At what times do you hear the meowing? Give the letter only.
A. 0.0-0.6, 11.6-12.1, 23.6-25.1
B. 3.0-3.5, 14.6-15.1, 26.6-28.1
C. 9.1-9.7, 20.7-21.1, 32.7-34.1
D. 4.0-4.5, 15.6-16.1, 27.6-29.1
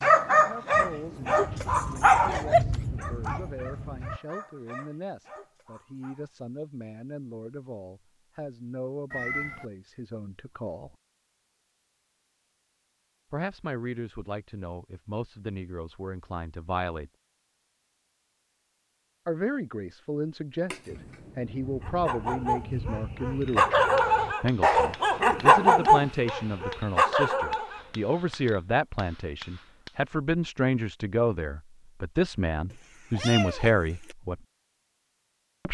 C.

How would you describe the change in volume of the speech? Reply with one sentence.
The volume of the speech goes up.